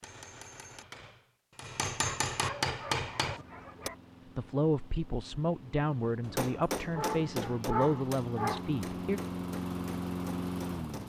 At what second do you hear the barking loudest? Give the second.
8 s.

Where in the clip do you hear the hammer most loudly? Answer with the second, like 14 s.
3 s.